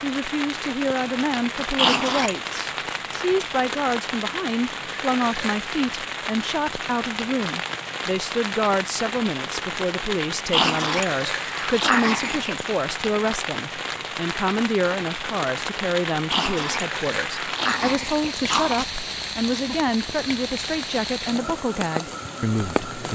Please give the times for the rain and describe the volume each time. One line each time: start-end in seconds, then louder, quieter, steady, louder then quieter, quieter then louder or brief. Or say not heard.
0.0-23.0 steady.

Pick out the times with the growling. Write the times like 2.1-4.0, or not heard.
1.8-2.5, 10.5-12.6, 16.3-18.9.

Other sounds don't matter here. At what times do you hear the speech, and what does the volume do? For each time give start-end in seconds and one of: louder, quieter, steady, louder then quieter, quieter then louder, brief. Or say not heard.
0.0-23.0 steady.